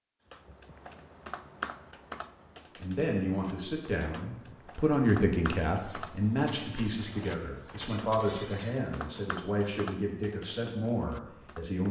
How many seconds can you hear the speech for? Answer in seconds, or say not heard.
9 s.